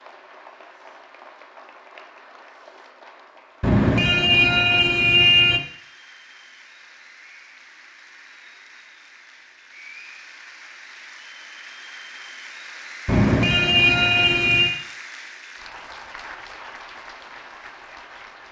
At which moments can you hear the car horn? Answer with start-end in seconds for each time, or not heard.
3.6-5.6, 13.1-14.8.